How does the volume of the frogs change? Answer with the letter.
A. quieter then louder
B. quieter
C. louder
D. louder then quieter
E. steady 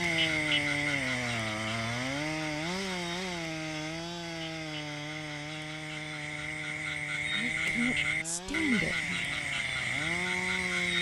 A.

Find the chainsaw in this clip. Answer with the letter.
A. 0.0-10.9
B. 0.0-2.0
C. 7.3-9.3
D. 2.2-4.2
A.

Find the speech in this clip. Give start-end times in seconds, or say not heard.
7.3-9.3.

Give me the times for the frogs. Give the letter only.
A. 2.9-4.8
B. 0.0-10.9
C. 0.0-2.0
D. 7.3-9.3
B.